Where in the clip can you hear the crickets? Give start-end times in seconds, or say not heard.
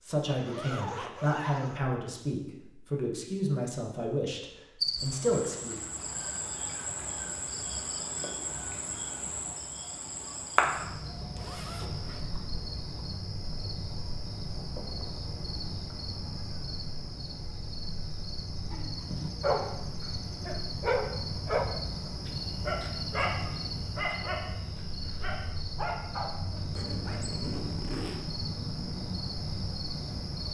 4.8-30.4.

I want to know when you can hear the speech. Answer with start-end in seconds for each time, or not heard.
0.0-5.9.